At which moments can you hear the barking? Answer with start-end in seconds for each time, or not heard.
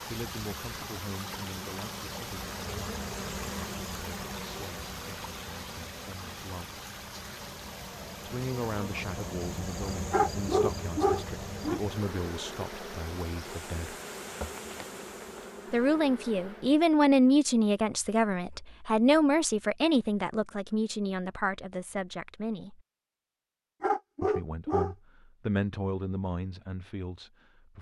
10.1-11.8, 23.8-24.9.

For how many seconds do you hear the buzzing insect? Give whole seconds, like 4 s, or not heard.
17 s.